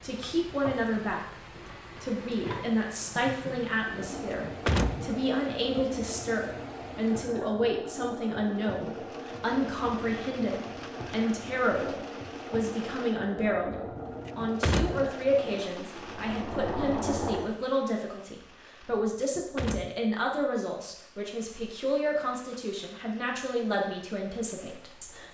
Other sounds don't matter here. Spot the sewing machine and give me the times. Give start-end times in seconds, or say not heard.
0.0-17.5.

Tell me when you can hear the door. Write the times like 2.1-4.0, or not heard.
4.1-5.8, 13.9-15.1, 18.9-19.9.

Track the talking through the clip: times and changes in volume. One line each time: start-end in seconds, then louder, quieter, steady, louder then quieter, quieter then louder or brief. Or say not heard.
0.0-25.2 steady.